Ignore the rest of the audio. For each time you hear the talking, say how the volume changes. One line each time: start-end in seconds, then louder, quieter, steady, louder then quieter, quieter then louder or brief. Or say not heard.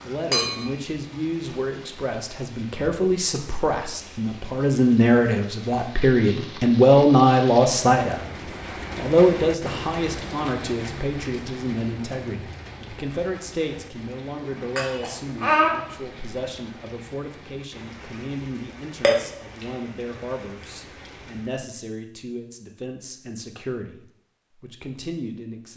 0.0-8.3 louder
8.9-25.7 quieter.